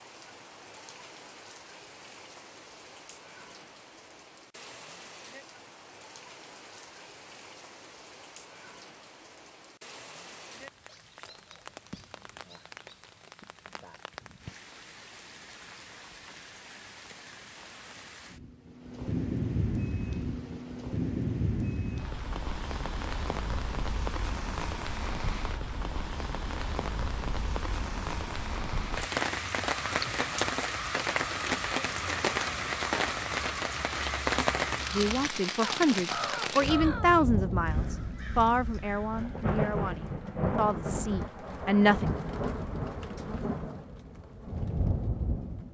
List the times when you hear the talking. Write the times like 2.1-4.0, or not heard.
34.9-42.0.